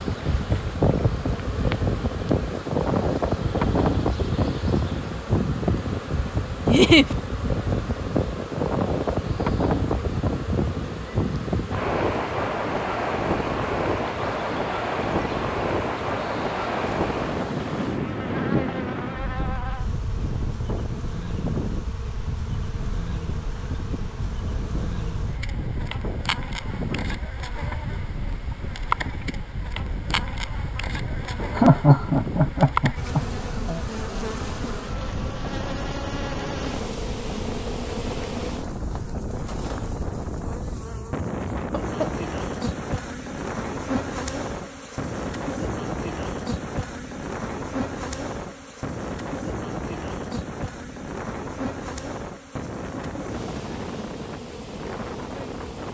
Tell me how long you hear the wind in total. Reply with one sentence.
The wind can be heard for 56 seconds in total.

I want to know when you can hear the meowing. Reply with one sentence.
The meowing can't be heard in this clip.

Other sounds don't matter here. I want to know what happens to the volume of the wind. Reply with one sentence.
The loudness of the wind goes down.